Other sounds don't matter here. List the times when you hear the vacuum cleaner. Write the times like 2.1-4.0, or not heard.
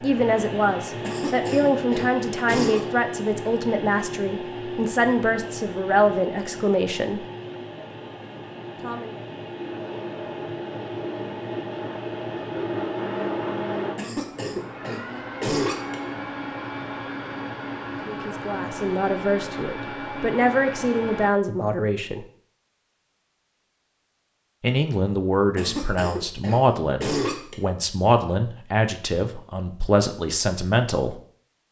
0.0-21.3.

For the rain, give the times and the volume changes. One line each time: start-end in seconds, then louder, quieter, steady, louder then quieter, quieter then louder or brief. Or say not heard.
not heard.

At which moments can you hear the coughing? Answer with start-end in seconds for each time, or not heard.
1.0-2.8, 13.9-15.9, 25.6-27.6.